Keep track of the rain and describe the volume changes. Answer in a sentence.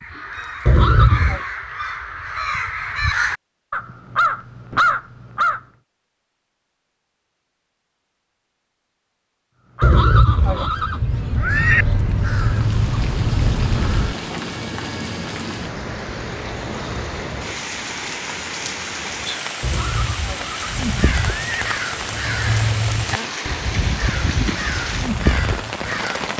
The volume of the rain stays about the same.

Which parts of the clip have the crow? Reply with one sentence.
You can hear the crow from 0.0 to 5.6 s, from 9.8 to 14.2 s and from 20.6 to 26.3 s.